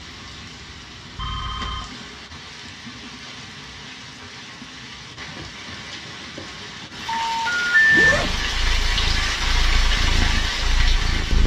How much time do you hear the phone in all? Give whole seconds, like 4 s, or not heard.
2 s.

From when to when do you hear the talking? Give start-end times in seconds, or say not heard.
not heard.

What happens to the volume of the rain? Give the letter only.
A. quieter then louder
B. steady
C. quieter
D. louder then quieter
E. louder
E.